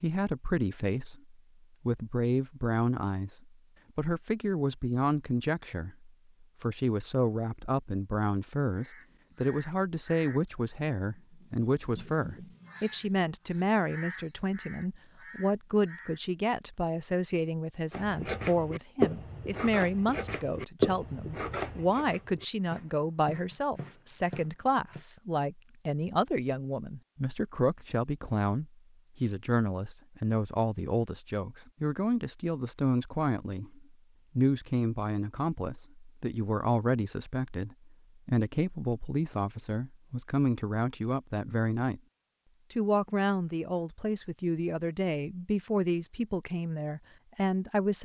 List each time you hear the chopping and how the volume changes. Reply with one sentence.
You can hear the chopping from 17.9 to 25.1 s, getting quieter.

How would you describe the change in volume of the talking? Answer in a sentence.
The loudness of the talking stays about the same.